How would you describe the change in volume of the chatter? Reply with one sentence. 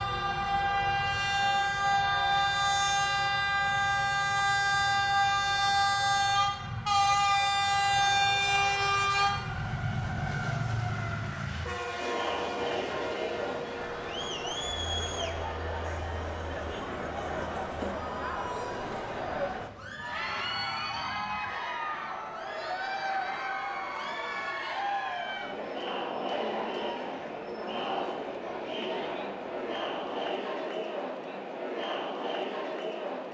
The loudness of the chatter stays about the same.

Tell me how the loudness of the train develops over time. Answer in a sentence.
The volume of the train goes down.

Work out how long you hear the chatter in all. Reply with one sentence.
You can hear the chatter for 21 seconds altogether.